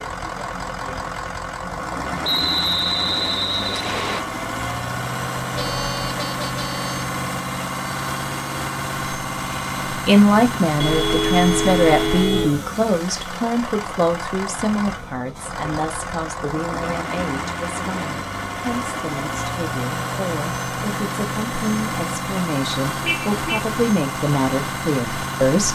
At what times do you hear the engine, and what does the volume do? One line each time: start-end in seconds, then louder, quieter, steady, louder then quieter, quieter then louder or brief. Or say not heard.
0.0-25.7 steady.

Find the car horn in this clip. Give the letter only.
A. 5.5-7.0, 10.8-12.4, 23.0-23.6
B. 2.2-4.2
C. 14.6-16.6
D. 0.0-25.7
A.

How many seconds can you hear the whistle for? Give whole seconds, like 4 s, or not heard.
2 s.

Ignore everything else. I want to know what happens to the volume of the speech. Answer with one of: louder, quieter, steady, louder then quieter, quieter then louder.
quieter then louder.